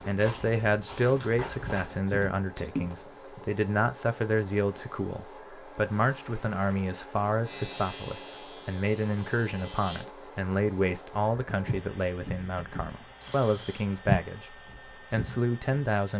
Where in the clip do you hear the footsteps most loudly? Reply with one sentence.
The loudest moment of the footsteps is at 14 seconds.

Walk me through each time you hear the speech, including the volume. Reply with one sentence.
The speech can be heard from 0.1 to 16.1 s, at a steady volume.